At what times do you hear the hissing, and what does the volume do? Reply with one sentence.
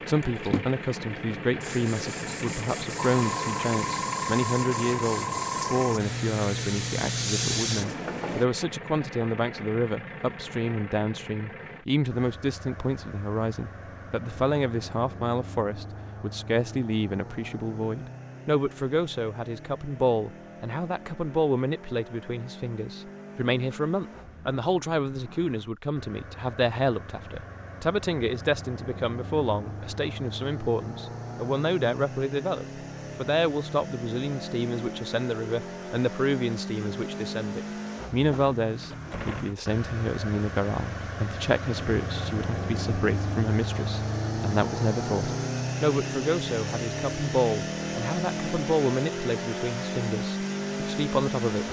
The hissing can be heard from 0.0 to 8.4 s, getting louder.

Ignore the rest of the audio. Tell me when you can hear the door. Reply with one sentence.
The door can be heard from 38.8 to 39.6 s.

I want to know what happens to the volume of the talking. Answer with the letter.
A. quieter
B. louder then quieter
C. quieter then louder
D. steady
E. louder
D.